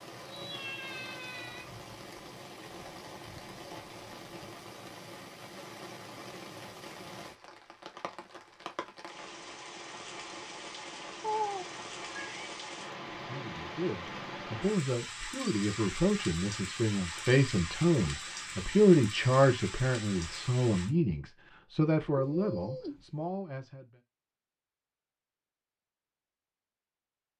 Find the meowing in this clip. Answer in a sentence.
You can hear the meowing from 0.1 to 1.6 s, from 11.2 to 12.5 s and from 22.1 to 23.1 s.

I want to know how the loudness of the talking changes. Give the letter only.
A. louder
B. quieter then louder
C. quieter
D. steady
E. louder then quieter
E.